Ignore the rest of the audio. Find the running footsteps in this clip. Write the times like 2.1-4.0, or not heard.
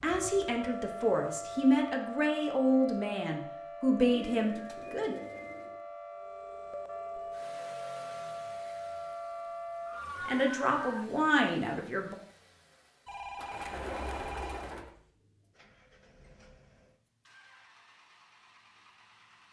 not heard.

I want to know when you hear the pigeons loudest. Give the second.
14 s.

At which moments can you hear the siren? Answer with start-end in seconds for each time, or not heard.
0.1-11.1.